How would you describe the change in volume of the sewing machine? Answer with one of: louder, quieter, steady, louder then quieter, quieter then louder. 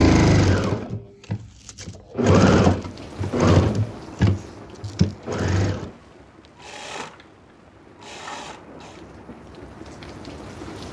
louder then quieter.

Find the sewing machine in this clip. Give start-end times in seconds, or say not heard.
0.0-9.0.